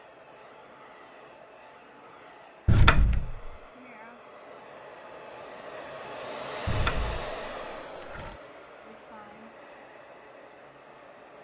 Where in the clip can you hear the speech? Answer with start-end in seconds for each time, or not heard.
not heard.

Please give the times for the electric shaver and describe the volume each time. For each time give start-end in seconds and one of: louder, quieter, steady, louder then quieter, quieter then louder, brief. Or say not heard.
not heard.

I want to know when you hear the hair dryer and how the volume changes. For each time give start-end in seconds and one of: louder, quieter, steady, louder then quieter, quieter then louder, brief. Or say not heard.
0.0-11.3 louder then quieter.